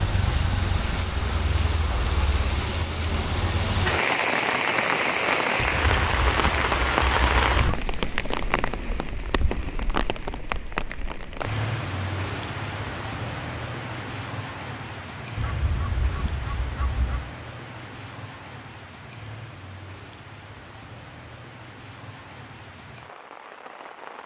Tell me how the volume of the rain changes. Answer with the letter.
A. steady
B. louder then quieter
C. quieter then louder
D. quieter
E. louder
D.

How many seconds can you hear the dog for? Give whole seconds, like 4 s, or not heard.
not heard.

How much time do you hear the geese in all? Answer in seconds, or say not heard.
4 s.